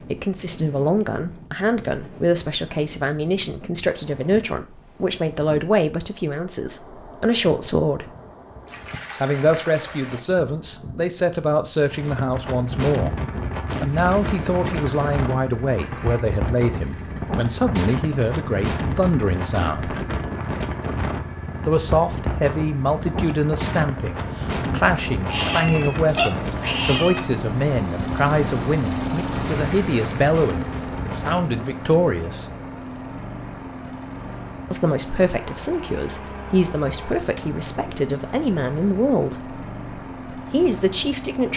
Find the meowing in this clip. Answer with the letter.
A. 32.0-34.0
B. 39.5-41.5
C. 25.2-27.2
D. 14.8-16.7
C.